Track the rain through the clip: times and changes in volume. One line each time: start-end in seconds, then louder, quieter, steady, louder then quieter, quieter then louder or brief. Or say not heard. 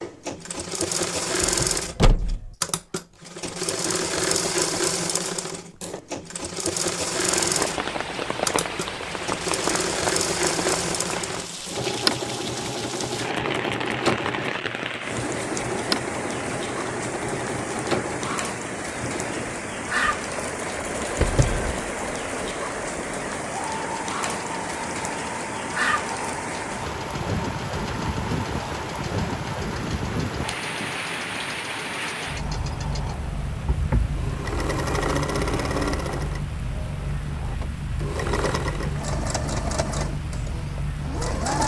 7.2-41.6 steady.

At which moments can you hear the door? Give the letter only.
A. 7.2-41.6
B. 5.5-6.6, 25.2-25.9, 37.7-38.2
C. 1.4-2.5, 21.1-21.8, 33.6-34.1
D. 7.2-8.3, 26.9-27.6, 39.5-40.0
C.